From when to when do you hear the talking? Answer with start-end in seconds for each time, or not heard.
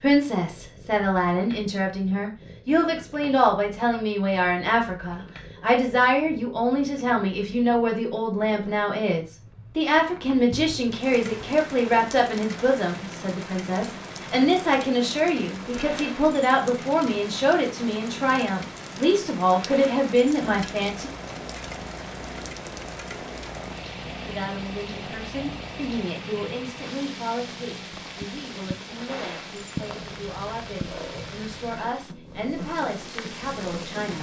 0.0-21.1, 24.2-34.1.